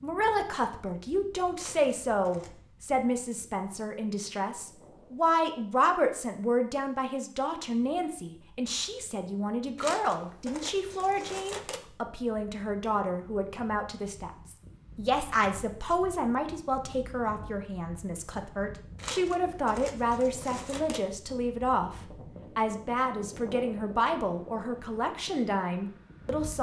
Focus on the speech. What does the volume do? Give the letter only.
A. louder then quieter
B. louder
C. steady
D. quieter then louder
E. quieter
C.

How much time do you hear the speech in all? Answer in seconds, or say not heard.
26 s.